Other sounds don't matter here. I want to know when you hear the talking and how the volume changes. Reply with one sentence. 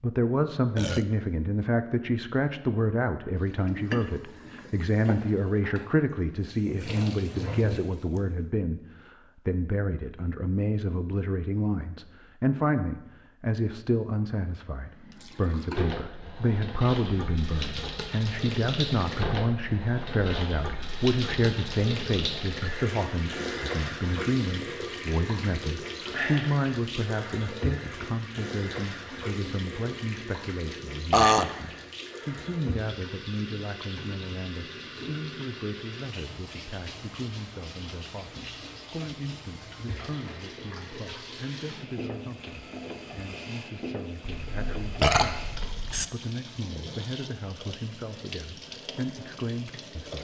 The talking can be heard from 0.0 to 50.2 s, getting quieter.